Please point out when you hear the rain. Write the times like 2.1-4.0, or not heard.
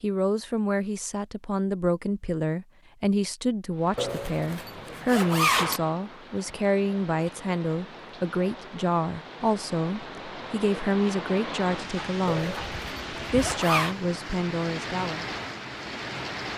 3.7-16.5.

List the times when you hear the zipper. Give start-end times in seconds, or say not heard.
4.0-5.8, 12.2-13.9.